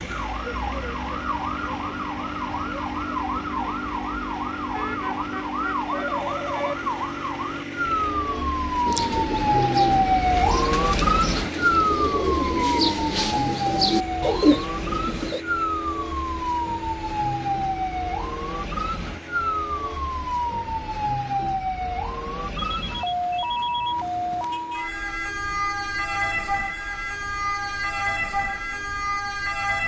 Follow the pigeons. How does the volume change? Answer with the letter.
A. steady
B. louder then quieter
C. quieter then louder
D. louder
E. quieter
D.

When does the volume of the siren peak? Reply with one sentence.
The loudest moment of the siren is at 10 seconds.